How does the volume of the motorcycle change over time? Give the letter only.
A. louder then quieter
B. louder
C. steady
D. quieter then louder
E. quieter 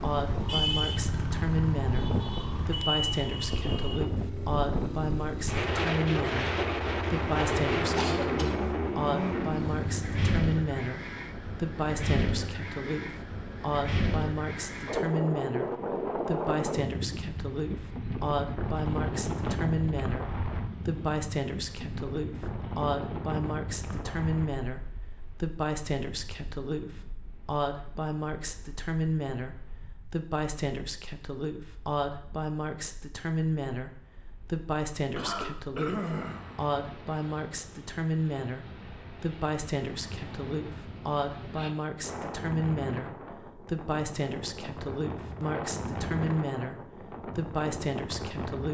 D.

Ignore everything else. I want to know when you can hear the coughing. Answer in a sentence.
The coughing can be heard from 8.0 to 8.8 s and from 35.1 to 36.6 s.